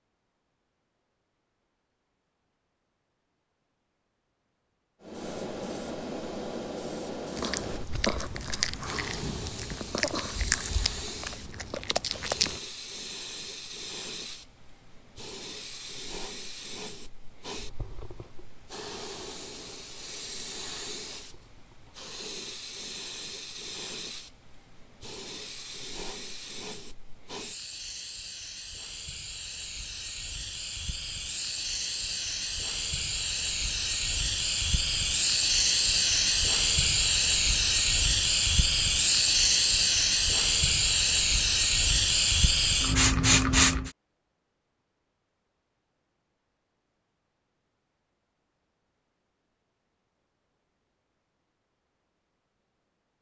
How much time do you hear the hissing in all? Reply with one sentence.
The hissing can be heard for 39 seconds in total.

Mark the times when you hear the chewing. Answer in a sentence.
You can hear the chewing from 7.3 to 12.6 s.